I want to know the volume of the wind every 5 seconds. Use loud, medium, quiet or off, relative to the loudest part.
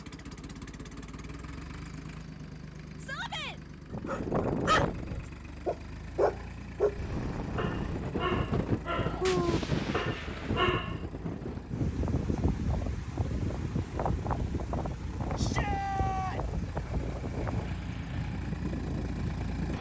off, loud, loud, loud.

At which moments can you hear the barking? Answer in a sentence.
The barking can be heard from 3.9 to 11.0 s.